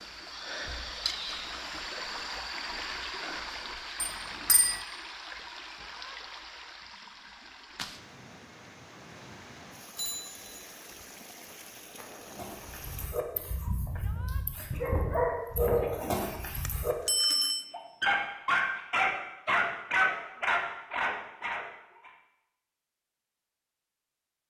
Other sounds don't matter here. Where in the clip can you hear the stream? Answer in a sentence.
You can hear the stream from 0.0 to 13.2 s.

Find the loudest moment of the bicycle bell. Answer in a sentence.
The volume of the bicycle bell peaks at 17 seconds.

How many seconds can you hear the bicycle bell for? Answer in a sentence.
You can hear the bicycle bell for 3 seconds altogether.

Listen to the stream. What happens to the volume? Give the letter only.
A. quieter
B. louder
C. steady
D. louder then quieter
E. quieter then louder
A.